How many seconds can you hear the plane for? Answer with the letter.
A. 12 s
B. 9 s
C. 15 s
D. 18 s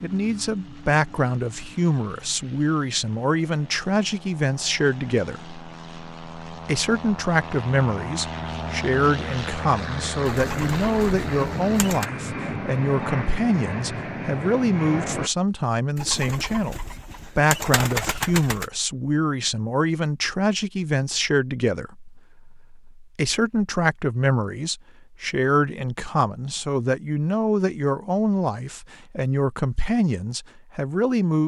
C.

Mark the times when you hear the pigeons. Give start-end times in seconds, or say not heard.
10.2-12.1, 15.9-18.7.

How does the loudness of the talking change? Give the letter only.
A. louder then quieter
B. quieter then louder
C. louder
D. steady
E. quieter
D.